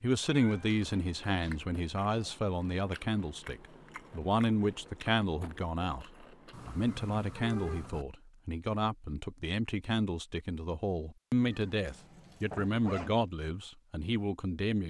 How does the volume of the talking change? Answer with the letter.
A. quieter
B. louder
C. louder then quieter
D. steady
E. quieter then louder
D.